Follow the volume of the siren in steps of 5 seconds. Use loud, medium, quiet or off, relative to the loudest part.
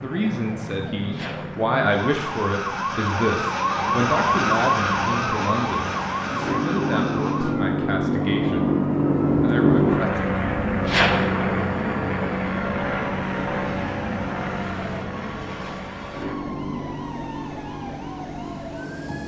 loud, loud, quiet, quiet.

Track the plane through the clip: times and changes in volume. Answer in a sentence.
You can hear the plane from 0.0 to 19.2 s, getting louder then quieter.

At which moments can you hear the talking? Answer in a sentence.
The talking can be heard from 0.0 to 8.7 s and from 9.4 to 10.2 s.